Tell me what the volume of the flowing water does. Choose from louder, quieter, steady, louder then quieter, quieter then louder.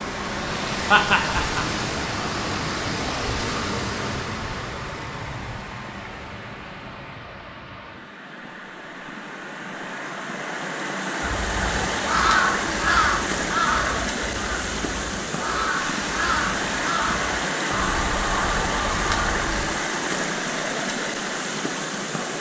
quieter then louder.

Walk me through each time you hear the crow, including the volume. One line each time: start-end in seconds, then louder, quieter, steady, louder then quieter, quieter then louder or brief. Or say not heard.
11.2-20.0 quieter.